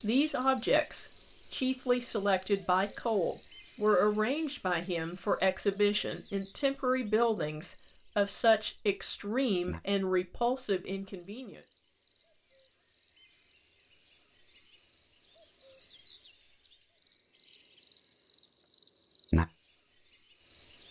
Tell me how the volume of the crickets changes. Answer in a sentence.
The volume of the crickets goes down, then up.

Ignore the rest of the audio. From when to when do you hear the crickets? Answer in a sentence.
The crickets can be heard from 0.0 to 20.8 s.